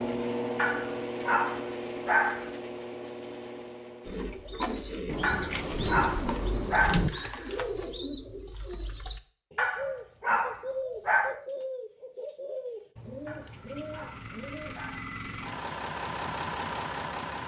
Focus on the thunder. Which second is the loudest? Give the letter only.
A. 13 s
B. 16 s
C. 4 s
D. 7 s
D.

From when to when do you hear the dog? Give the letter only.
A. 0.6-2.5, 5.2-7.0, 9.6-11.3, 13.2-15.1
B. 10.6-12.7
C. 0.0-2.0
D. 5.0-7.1
A.